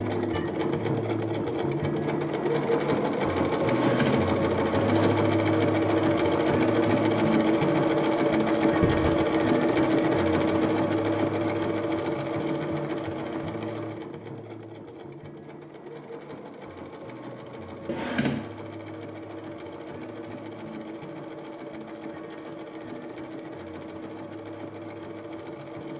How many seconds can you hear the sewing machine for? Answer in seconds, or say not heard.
26 s.